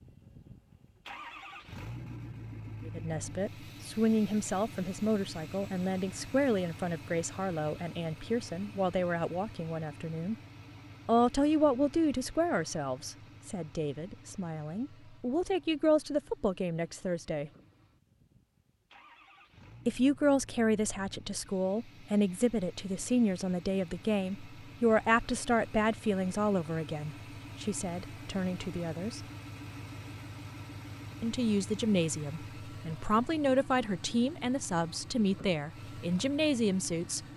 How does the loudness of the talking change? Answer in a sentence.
The loudness of the talking stays about the same.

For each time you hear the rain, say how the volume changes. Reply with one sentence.
You can't hear the rain here.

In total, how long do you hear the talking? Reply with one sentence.
The talking can be heard for 29 seconds in total.